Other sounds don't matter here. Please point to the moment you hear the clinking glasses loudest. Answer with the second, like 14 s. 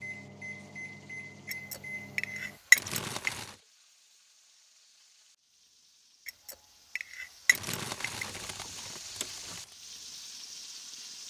3 s.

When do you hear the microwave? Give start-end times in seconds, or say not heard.
0.0-2.6.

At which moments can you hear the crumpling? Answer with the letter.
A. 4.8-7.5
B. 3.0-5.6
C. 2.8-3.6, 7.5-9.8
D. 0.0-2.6
C.